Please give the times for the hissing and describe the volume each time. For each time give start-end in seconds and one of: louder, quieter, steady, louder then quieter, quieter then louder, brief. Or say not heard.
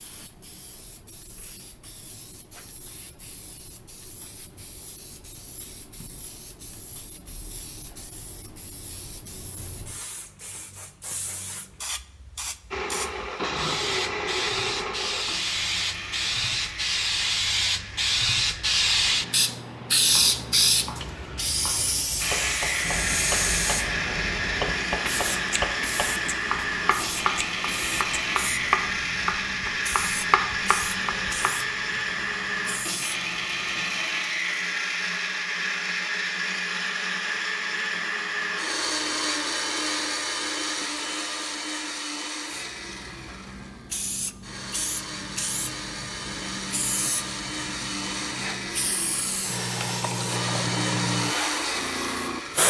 0.0-34.2 louder then quieter
42.5-52.6 louder.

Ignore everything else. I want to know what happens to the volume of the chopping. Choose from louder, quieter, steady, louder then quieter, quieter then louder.
louder.